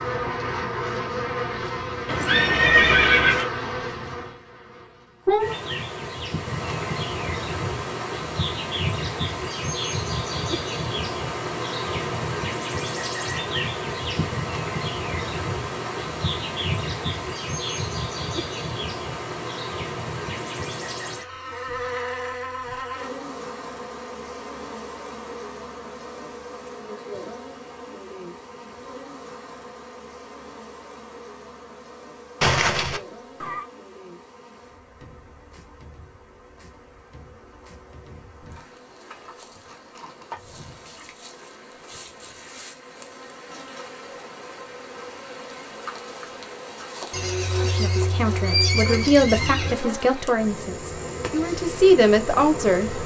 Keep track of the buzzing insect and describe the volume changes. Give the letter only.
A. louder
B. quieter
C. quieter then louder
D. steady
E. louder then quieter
C.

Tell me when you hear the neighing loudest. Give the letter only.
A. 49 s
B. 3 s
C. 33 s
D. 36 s
B.